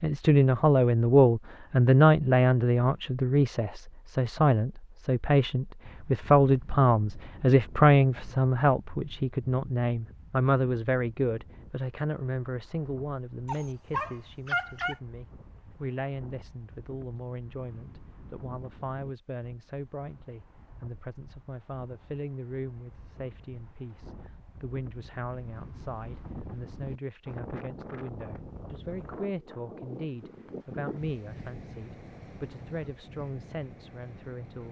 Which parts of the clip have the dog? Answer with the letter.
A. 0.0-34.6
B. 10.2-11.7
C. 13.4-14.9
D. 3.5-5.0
C.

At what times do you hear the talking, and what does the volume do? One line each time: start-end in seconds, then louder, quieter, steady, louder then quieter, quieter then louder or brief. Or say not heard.
0.0-34.6 quieter.